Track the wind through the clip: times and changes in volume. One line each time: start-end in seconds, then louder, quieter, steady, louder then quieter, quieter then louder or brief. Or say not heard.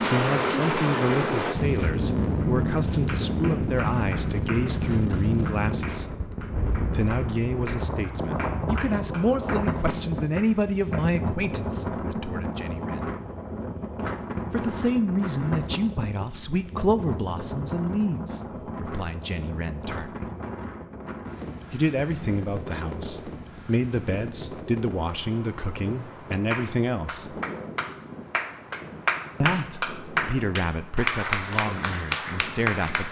0.0-33.0 quieter.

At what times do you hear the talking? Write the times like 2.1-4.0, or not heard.
0.0-13.1, 14.5-20.3, 21.7-27.4, 29.4-33.0.